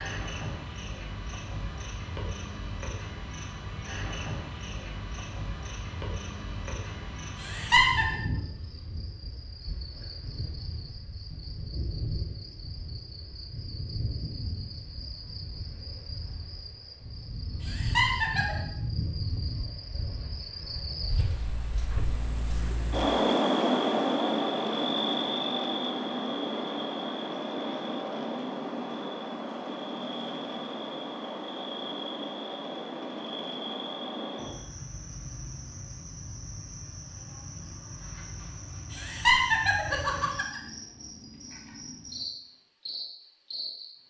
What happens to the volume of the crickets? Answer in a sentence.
The loudness of the crickets goes up, then down.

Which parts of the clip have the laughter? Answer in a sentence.
You can hear the laughter from 7.4 to 8.1 s, from 17.6 to 18.6 s and from 38.9 to 40.6 s.